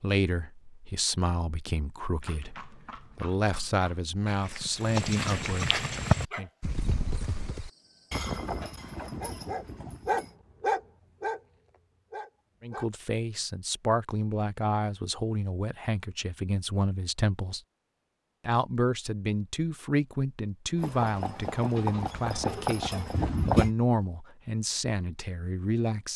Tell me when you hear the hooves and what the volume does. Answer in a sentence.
The hooves can be heard from 2.2 to 10.3 s, getting louder then quieter; and briefly from 20.8 to 23.7 s.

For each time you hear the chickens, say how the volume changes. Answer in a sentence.
You can't hear the chickens here.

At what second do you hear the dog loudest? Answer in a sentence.
The loudest moment of the dog is at 11 seconds.